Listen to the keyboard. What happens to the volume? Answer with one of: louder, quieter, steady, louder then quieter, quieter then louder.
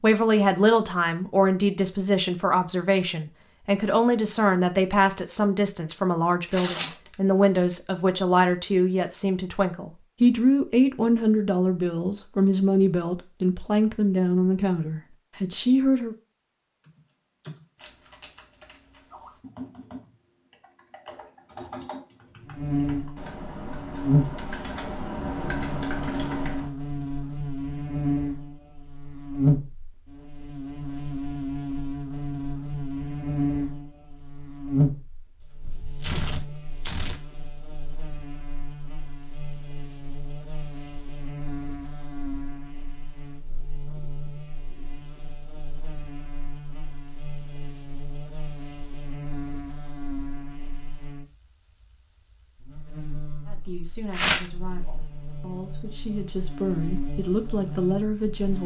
louder.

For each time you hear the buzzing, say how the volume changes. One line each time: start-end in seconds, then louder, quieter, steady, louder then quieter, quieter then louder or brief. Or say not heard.
22.4-58.6 quieter.